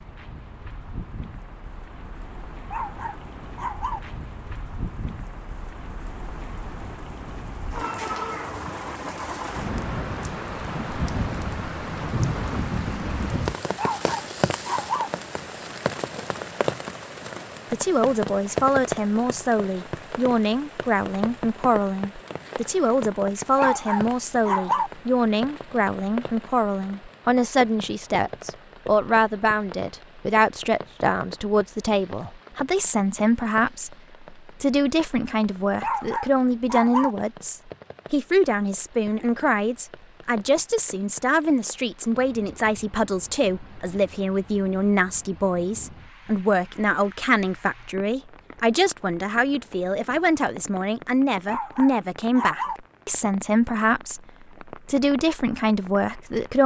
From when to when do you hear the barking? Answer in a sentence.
The barking can be heard from 2.7 to 4.0 s, from 13.8 to 15.1 s, from 23.6 to 24.9 s, from 35.8 to 37.1 s and from 51.5 to 52.8 s.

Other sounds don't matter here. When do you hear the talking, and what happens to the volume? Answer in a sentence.
The talking can be heard from 17.7 to 56.6 s, at a steady volume.